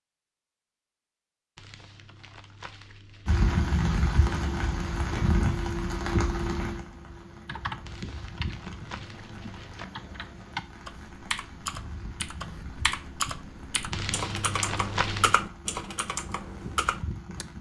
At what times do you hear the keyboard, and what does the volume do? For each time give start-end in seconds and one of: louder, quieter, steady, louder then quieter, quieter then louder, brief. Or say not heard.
6.8-17.4 louder.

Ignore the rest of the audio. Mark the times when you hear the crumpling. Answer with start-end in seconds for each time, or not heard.
1.6-3.5, 7.8-9.8, 13.9-15.3.